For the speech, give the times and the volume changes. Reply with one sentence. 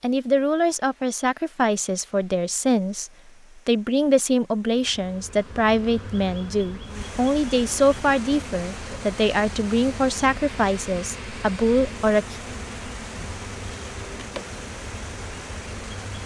The speech can be heard from 0.0 to 12.4 s, at a steady volume.